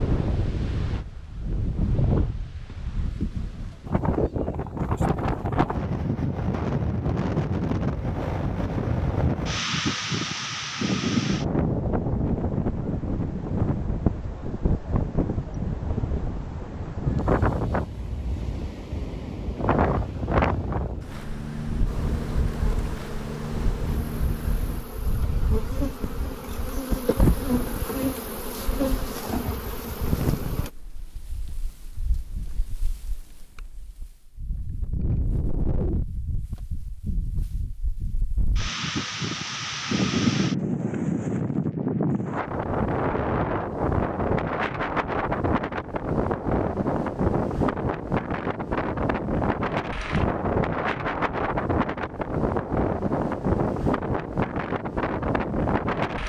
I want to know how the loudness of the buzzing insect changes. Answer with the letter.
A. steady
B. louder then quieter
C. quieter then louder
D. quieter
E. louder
E.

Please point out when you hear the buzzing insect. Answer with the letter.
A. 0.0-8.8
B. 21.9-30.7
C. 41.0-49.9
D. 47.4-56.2
B.